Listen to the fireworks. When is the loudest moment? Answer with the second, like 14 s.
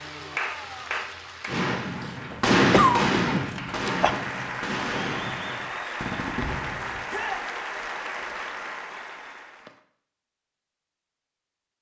3 s.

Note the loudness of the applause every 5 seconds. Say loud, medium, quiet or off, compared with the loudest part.
loud, loud, off.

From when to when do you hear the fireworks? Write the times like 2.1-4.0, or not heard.
1.4-7.0.